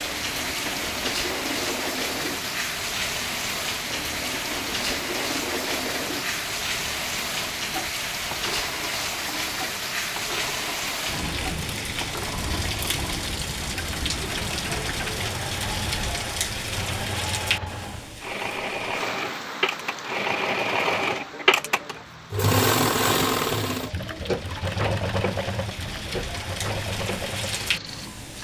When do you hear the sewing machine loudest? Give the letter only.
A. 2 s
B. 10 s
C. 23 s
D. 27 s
C.